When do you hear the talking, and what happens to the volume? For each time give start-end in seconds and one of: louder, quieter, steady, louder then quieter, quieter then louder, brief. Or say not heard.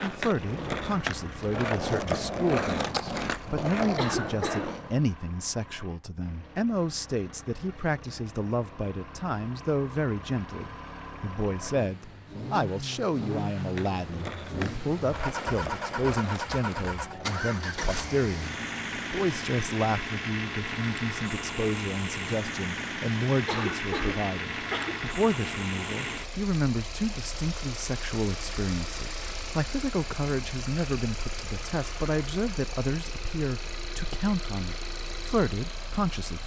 0.0-36.4 steady.